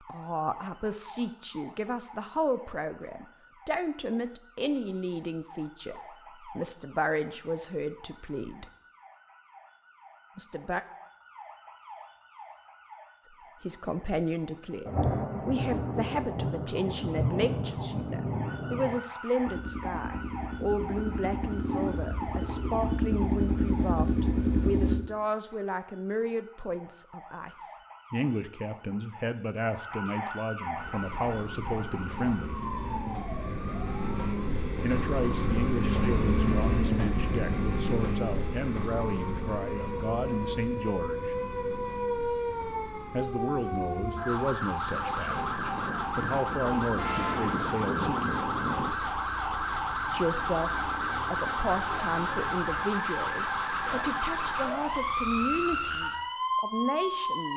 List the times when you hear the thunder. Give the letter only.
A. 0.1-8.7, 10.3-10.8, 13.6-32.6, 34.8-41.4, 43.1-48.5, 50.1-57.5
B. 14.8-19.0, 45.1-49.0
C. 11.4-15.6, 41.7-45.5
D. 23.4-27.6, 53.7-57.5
B.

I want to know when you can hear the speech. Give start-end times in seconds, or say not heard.
0.1-8.7, 10.3-10.8, 13.6-32.6, 34.8-41.4, 43.1-48.5, 50.1-57.5.